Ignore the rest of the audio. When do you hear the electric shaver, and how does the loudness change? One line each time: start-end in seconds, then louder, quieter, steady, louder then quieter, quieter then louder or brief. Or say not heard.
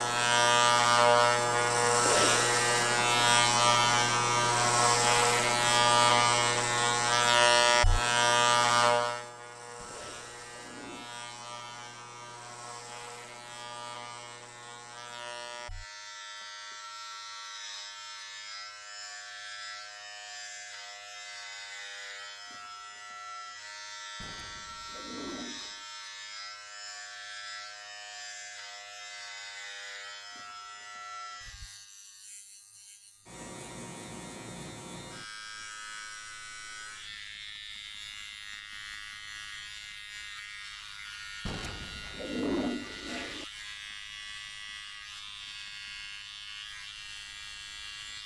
0.0-48.2 quieter.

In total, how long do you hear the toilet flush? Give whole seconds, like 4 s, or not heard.
5 s.